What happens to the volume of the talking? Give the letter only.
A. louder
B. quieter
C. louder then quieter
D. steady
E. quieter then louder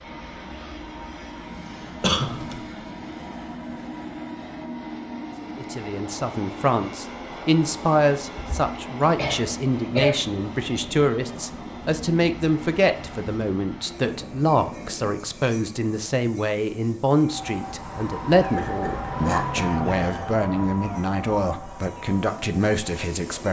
D.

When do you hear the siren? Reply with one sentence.
The siren can be heard from 17.1 to 23.2 s.